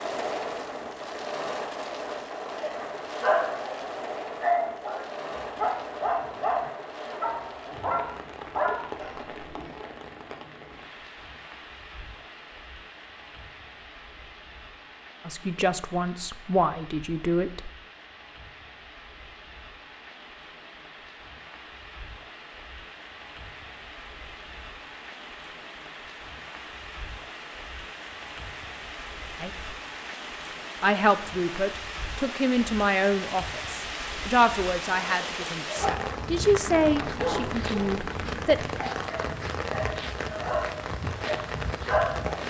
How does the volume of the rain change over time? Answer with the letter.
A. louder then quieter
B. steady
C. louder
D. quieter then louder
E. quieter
D.